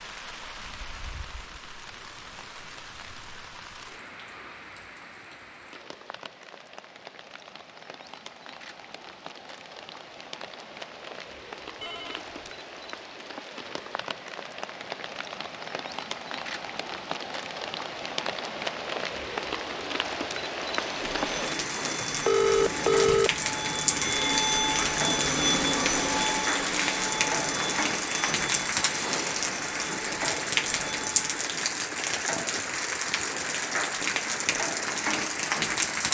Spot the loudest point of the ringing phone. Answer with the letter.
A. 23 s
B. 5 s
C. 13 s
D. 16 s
A.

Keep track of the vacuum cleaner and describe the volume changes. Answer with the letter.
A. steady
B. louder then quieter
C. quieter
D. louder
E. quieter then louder
B.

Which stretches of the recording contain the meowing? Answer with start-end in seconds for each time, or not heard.
not heard.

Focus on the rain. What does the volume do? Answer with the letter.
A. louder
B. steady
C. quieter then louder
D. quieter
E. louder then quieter
A.